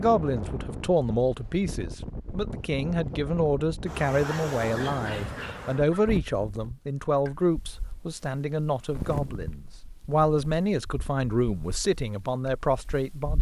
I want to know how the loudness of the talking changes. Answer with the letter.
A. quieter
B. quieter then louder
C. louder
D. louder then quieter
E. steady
E.